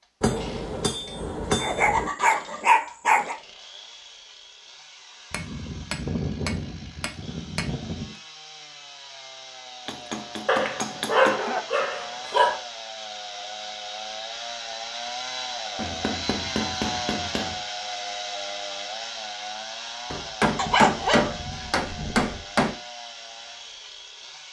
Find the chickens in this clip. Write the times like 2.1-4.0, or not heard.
not heard.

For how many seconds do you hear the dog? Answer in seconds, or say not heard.
6 s.